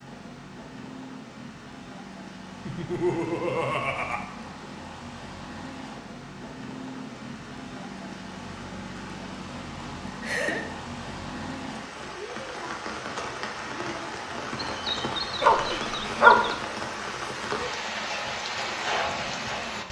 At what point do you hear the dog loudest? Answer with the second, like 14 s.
16 s.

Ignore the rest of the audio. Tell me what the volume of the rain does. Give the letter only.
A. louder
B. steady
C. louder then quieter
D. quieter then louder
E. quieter
A.